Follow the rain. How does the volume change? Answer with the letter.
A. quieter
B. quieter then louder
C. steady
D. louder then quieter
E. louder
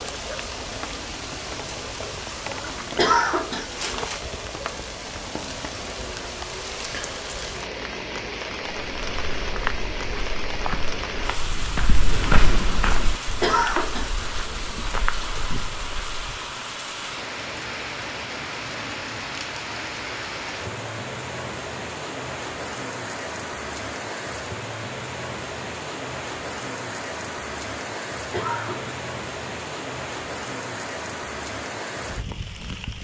C.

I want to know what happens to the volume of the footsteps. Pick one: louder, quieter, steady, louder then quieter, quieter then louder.
louder then quieter.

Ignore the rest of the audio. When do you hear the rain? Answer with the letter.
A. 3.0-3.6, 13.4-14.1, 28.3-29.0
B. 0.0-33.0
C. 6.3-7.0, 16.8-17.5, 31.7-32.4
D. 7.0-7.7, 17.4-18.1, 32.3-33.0
B.